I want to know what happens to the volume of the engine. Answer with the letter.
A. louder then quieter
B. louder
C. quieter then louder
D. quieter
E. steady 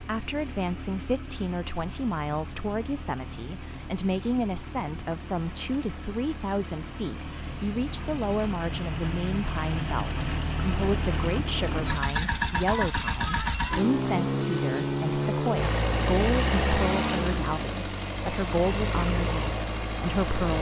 B.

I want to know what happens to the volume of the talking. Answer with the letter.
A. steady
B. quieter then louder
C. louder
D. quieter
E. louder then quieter
A.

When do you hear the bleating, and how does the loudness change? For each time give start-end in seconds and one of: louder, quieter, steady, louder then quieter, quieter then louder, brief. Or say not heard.
not heard.